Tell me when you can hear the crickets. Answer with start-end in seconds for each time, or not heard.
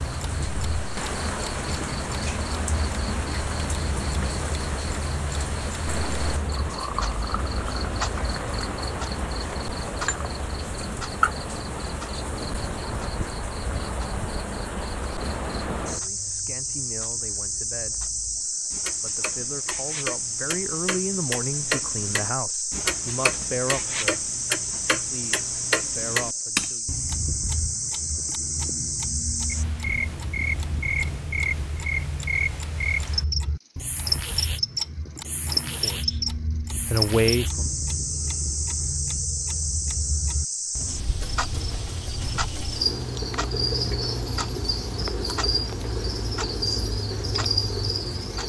0.0-48.4.